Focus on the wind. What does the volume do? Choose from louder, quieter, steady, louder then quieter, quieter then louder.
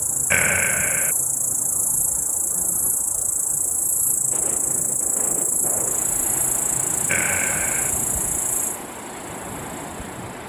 steady.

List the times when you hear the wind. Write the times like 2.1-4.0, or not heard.
4.3-10.4.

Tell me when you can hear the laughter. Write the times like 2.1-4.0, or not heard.
0.3-1.1, 7.0-7.9.